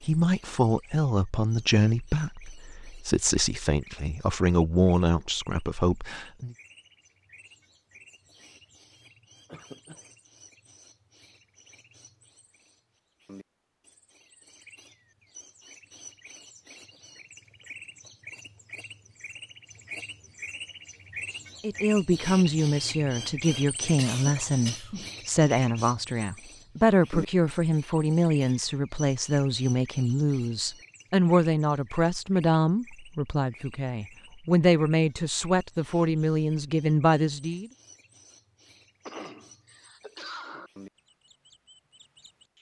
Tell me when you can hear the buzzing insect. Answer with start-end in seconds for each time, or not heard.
not heard.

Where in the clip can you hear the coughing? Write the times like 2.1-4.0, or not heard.
9.4-10.0, 23.9-25.1, 39.0-40.7.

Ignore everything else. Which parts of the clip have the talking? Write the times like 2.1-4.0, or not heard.
0.1-6.5, 21.6-37.7.